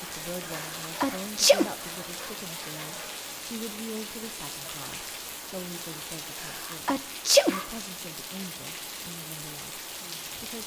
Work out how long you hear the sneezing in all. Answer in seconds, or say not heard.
2 s.